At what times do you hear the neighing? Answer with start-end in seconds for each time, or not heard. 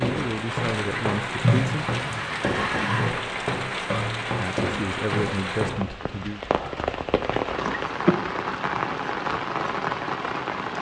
1.4-3.1.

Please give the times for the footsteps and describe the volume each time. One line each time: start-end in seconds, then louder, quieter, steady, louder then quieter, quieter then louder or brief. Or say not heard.
0.0-6.0 steady.